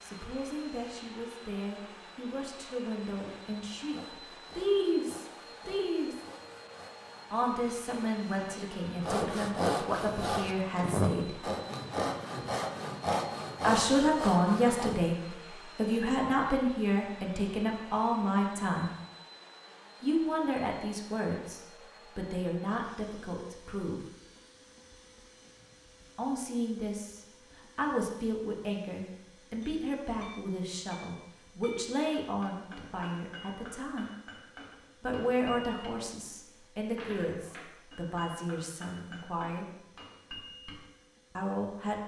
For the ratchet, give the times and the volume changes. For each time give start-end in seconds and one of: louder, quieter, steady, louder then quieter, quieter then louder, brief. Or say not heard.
not heard.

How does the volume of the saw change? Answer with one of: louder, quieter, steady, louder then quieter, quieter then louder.
louder.